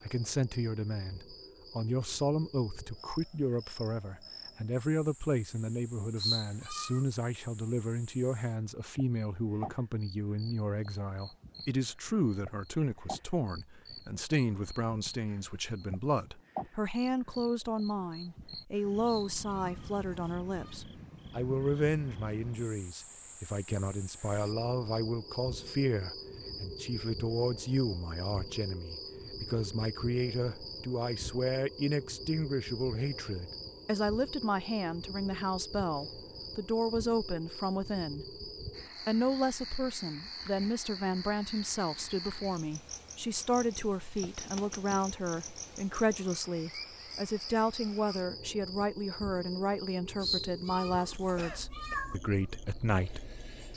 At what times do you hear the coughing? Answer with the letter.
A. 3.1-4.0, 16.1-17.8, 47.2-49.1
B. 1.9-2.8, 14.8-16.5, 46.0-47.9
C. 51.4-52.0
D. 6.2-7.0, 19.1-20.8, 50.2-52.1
C.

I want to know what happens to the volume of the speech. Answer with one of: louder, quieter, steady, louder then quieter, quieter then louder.
steady.